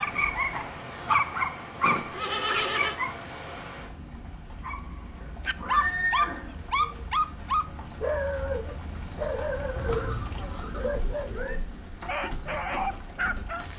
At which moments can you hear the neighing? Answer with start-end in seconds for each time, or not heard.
1.8-3.0, 5.2-6.7, 9.8-11.6.